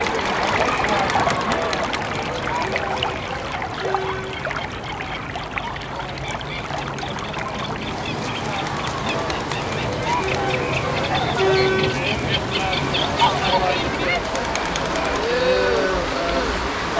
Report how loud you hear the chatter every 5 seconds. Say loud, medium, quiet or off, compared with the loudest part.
loud, medium, loud, loud.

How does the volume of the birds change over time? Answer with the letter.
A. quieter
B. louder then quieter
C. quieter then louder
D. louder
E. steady
D.